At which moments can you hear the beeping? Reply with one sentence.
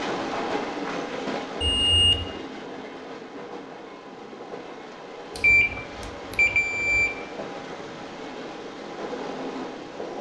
You can hear the beeping from 1.6 to 2.2 s and from 5.3 to 7.1 s.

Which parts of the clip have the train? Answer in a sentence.
You can hear the train from 0.0 to 10.1 s.